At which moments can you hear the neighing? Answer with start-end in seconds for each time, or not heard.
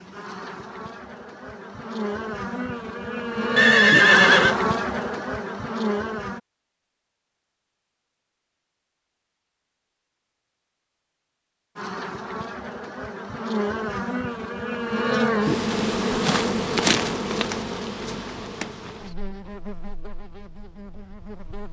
3.5-4.5.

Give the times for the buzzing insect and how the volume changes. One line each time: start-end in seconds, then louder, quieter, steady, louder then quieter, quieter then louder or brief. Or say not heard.
0.0-6.4 louder then quieter
11.8-21.6 louder then quieter.